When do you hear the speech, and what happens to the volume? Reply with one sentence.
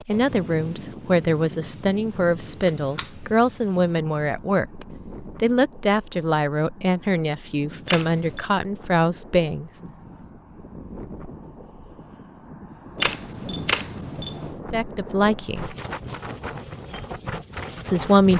You can hear the speech from 0.1 to 9.7 s, at a steady volume; briefly from 14.7 to 15.8 s; and briefly from 17.9 to 18.3 s.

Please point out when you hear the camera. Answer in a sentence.
The camera can be heard from 2.6 to 3.1 s, from 7.8 to 8.4 s and from 12.9 to 14.6 s.